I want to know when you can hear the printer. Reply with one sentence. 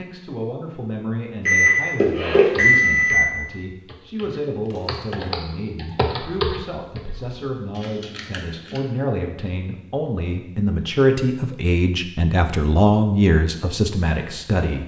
The printer can't be heard in this clip.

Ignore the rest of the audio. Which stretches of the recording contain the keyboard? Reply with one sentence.
The keyboard can be heard from 2.5 to 8.8 s.